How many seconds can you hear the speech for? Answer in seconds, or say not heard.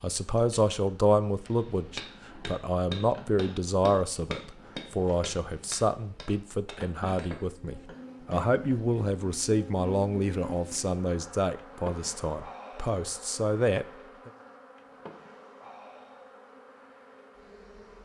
14 s.